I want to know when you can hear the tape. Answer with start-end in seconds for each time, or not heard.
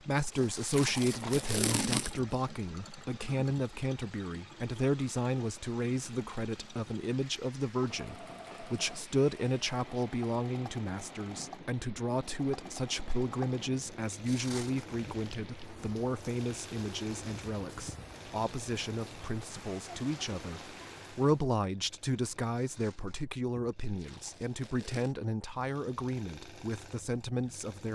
0.7-2.3, 23.9-25.1.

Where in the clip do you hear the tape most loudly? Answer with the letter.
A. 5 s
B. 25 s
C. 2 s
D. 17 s
C.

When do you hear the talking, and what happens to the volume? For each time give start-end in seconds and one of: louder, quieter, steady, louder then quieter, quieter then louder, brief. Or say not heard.
0.1-27.9 steady.